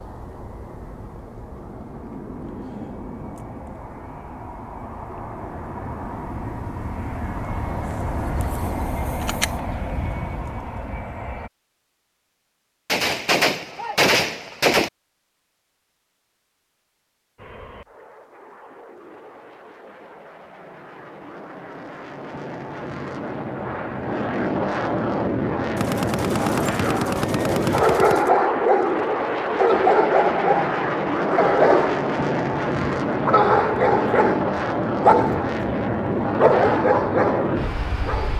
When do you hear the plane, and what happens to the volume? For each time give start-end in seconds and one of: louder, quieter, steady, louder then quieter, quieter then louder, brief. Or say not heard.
0.0-11.5 louder
17.4-38.3 louder.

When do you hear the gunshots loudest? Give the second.
14 s.